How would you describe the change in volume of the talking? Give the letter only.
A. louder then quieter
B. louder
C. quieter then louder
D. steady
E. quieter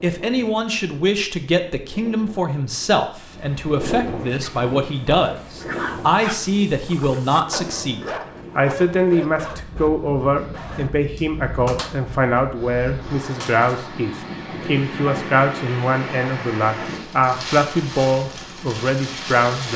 D.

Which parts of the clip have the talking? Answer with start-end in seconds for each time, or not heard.
0.0-19.7.